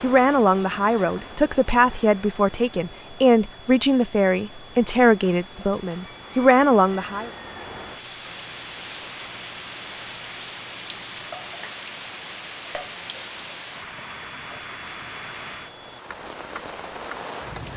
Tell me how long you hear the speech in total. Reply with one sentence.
You can hear the speech for 7 seconds altogether.